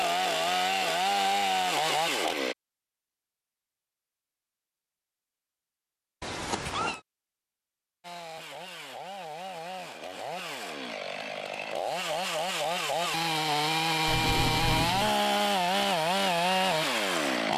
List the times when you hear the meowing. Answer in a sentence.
The meowing can be heard from 6.2 to 7.0 s and from 14.1 to 15.2 s.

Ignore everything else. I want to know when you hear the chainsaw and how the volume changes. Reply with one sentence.
The chainsaw can be heard briefly from 0.0 to 2.5 s; and from 8.0 to 17.5 s, getting louder.